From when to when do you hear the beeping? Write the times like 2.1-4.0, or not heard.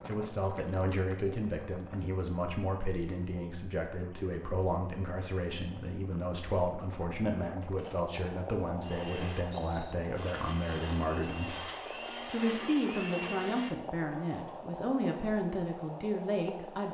not heard.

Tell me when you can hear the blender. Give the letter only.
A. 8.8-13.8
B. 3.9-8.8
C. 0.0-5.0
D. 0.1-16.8
A.